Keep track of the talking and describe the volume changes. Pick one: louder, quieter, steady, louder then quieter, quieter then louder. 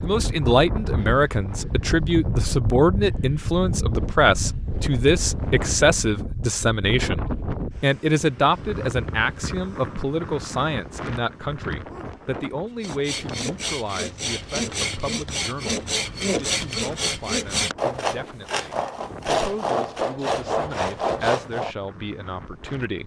quieter.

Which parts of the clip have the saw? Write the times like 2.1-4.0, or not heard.
12.8-21.8.